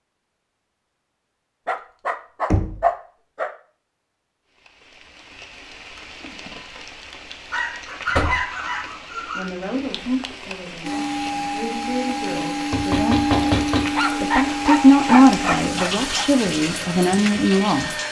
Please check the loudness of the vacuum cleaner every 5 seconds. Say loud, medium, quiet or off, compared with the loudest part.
off, off, loud, medium.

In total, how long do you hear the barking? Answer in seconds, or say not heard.
6 s.